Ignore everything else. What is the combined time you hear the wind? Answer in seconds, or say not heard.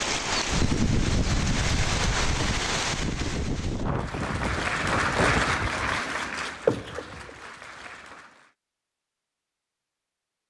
6 s.